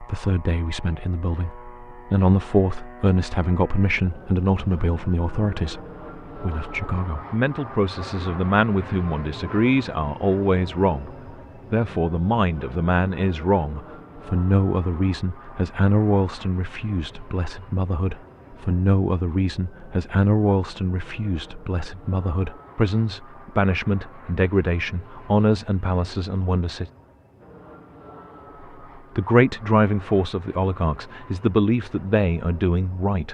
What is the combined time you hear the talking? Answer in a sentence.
The talking can be heard for 30 seconds in total.